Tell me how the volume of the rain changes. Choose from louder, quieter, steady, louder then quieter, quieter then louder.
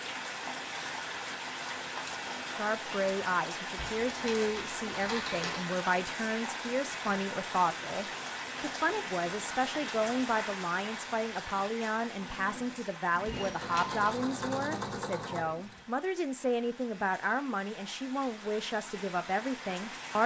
quieter.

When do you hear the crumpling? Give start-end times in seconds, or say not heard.
3.8-5.6, 13.3-14.2.